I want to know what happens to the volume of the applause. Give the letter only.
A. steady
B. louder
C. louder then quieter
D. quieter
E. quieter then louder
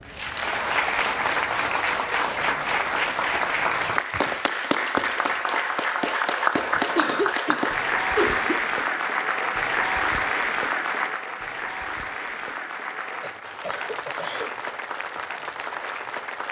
D.